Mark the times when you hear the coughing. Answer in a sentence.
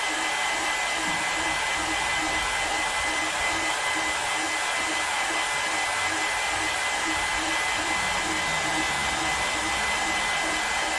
The coughing can't be heard in this clip.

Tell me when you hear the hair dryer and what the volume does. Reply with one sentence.
The hair dryer can be heard from 0.0 to 10.9 s, at a steady volume.